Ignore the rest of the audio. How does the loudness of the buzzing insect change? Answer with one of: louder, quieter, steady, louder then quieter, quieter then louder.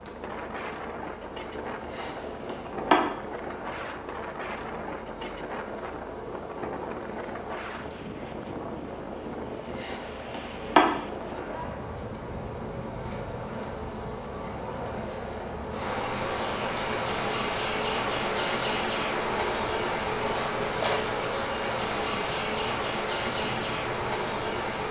quieter then louder.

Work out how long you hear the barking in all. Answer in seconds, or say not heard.
not heard.